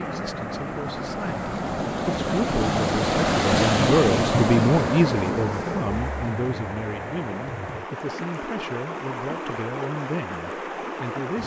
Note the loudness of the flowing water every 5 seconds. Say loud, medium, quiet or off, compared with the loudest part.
loud, medium, medium.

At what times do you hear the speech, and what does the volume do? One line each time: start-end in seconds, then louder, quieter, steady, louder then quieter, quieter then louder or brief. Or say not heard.
0.0-11.4 louder then quieter.